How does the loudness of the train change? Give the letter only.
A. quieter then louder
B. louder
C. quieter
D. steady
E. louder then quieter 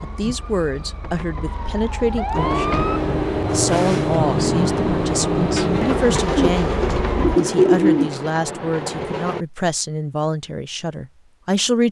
C.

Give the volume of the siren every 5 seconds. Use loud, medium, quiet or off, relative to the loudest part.
loud, loud, off.